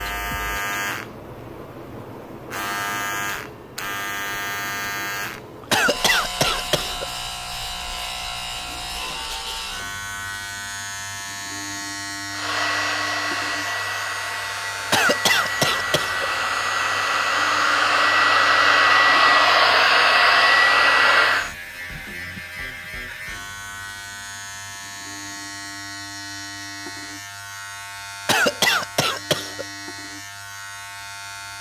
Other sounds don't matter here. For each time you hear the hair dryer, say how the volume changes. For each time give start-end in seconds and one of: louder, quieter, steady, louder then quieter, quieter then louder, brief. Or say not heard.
12.3-21.5 louder.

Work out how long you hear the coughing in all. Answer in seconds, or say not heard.
4 s.